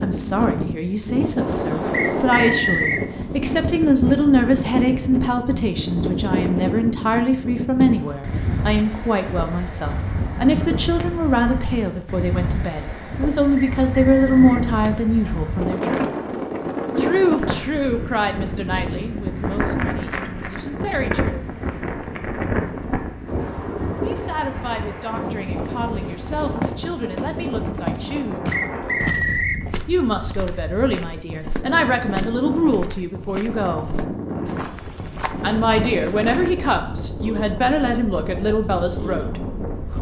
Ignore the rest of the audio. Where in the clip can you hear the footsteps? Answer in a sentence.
The footsteps can be heard from 26.6 to 36.5 s.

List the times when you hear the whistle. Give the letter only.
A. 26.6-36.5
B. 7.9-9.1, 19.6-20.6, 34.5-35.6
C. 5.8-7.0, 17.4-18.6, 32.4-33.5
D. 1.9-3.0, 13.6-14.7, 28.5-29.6
D.